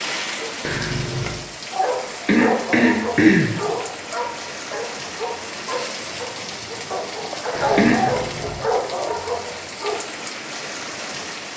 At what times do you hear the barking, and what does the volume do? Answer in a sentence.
The barking can be heard from 1.7 to 10.0 s, getting quieter then louder.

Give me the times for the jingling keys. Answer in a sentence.
The jingling keys can be heard from 0.6 to 1.5 s and from 7.5 to 8.7 s.